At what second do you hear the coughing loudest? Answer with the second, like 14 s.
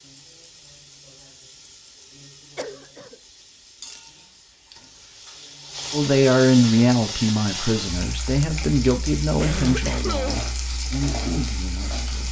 10 s.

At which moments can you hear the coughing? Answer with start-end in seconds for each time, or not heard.
2.5-3.1, 9.4-10.4.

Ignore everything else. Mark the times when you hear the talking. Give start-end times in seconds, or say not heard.
5.9-12.2.